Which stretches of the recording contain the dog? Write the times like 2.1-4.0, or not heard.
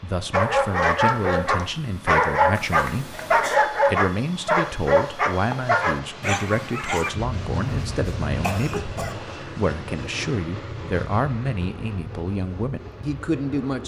0.3-7.2.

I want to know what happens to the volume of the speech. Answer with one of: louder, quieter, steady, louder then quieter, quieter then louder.
steady.